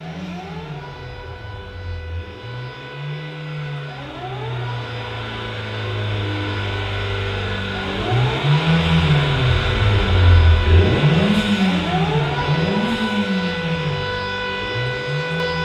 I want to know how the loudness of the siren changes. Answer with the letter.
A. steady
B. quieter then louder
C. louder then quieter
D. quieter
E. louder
E.